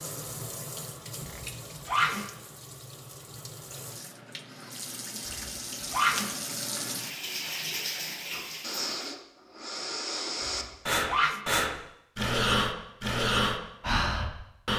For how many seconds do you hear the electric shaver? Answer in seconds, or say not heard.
not heard.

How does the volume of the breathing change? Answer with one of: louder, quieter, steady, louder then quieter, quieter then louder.
louder.